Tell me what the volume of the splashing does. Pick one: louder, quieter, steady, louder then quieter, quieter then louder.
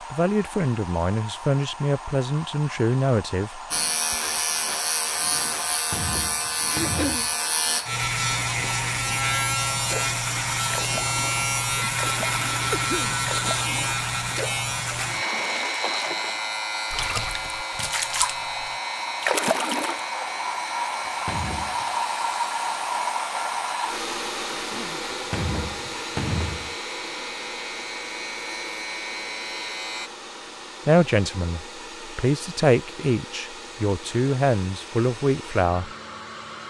louder.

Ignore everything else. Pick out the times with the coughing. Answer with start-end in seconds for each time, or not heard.
6.8-7.2, 12.7-13.2, 24.5-25.1.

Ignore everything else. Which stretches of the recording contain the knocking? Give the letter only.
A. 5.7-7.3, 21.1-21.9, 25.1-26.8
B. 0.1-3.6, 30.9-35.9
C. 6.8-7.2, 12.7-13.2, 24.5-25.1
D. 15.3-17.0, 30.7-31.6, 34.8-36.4
A.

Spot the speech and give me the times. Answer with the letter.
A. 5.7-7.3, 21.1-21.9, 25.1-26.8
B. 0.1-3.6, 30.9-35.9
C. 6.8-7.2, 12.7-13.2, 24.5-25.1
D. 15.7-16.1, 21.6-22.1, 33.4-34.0
B.